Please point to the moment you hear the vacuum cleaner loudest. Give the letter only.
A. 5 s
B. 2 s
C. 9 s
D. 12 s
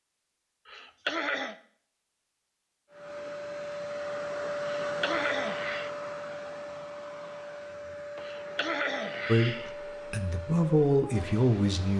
A.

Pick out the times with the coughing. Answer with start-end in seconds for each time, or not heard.
0.7-1.6, 4.8-5.9, 8.2-9.8.